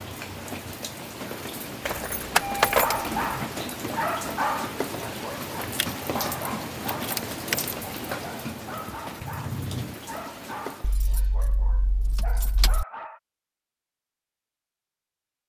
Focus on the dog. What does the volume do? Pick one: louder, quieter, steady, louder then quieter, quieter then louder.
quieter.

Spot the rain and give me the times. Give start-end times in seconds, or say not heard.
0.0-10.9.